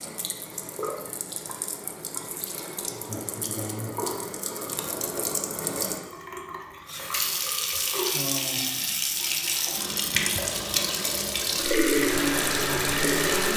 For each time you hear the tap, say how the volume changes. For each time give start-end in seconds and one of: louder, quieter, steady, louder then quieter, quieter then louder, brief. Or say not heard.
0.0-13.5 louder.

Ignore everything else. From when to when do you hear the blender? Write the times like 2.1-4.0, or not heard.
11.9-13.5.